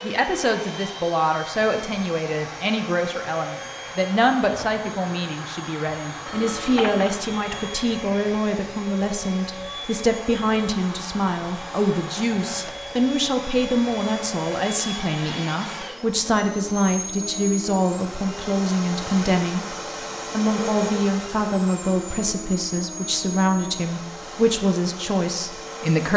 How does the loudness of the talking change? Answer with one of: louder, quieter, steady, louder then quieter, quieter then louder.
steady.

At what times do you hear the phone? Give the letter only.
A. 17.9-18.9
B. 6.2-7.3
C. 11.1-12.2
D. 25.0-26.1
B.